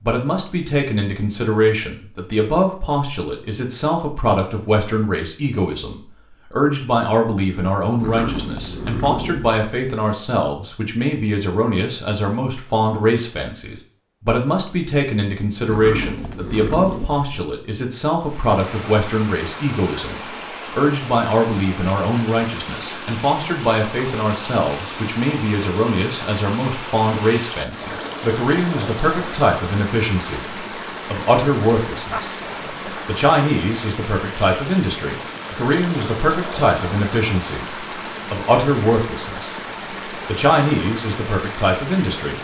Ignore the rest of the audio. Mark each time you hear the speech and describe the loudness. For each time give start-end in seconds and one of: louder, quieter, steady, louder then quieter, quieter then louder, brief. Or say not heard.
0.1-42.3 steady.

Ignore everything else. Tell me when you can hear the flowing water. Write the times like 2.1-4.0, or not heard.
18.2-42.3.